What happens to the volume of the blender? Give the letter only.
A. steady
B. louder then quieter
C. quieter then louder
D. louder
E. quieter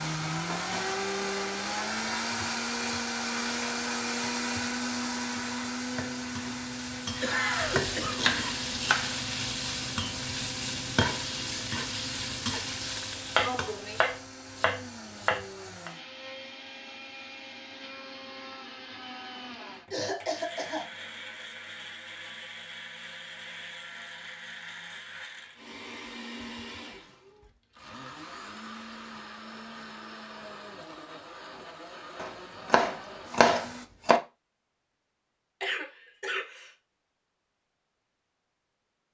E.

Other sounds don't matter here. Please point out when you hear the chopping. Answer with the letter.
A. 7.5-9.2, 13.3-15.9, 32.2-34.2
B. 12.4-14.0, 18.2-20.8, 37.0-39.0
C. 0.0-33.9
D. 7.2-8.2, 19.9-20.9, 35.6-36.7
A.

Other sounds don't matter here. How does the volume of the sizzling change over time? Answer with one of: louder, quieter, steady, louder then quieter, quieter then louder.
louder.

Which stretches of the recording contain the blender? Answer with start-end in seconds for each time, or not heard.
0.0-33.9.